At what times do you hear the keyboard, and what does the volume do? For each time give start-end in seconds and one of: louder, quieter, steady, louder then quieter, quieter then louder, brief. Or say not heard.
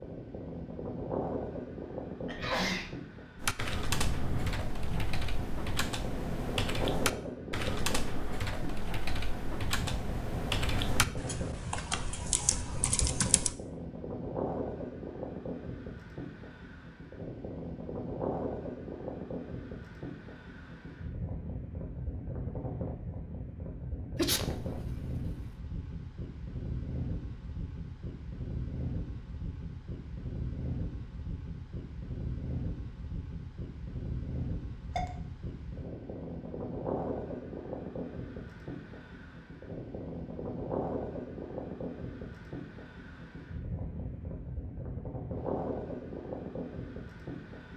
3.4-13.6 steady.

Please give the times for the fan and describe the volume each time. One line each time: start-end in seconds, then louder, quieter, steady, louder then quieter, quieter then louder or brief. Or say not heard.
0.0-47.7 steady.